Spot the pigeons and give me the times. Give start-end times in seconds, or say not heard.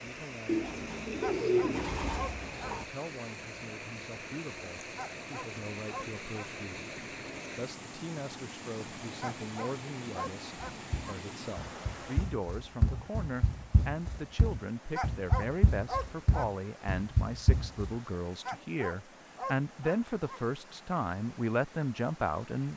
0.5-2.9.